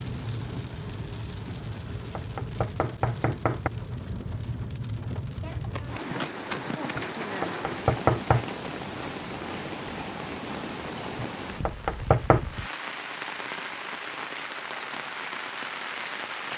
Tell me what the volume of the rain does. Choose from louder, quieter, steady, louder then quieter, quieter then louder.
steady.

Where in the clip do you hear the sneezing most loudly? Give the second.
6 s.